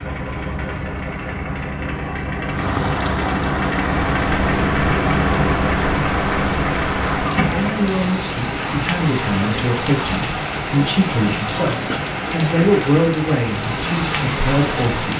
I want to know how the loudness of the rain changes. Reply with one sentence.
The loudness of the rain stays about the same.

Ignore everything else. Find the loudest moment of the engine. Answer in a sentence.
The loudest moment of the engine is at 5 seconds.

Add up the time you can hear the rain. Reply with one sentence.
The rain can be heard for 13 seconds in total.